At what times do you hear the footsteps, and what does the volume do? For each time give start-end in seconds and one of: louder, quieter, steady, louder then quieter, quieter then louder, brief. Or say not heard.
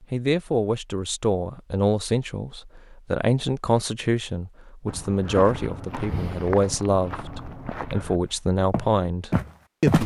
4.8-10.0 quieter then louder.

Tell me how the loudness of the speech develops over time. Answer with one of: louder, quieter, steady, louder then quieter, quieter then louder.
steady.